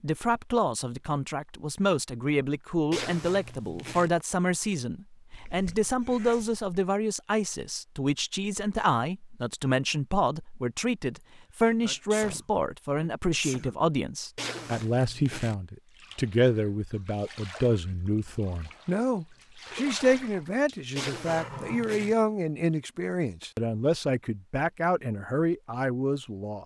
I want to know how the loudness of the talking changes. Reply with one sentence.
The volume of the talking stays about the same.